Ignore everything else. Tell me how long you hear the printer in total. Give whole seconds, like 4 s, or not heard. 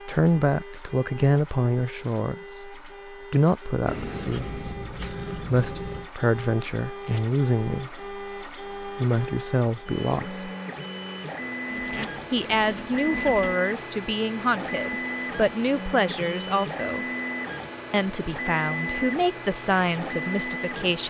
21 s.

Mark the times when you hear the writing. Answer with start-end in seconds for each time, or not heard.
3.9-6.1, 11.7-13.6.